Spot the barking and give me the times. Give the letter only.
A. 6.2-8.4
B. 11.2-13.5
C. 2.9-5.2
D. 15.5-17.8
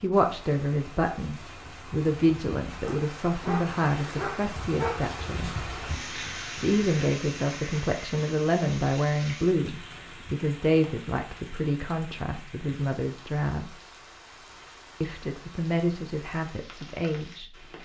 C.